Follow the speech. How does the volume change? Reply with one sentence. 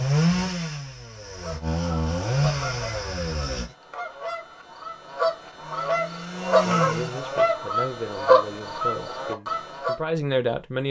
The loudness of the speech goes down, then up.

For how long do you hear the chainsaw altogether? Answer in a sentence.
You can hear the chainsaw for 6 seconds altogether.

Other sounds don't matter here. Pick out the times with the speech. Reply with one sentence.
The speech can be heard from 6.6 to 10.8 s.